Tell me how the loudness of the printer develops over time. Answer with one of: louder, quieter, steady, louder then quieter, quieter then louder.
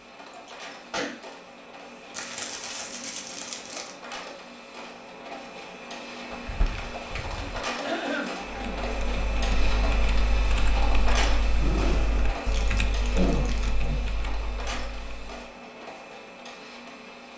louder then quieter.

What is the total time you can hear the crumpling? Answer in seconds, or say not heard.
5 s.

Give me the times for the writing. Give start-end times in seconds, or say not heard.
not heard.